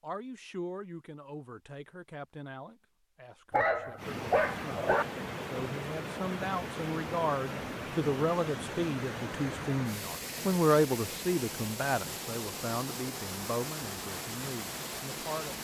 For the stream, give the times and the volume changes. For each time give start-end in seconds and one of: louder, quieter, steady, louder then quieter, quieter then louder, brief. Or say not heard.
4.0-15.5 steady.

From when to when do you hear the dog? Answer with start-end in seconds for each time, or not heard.
3.5-5.0.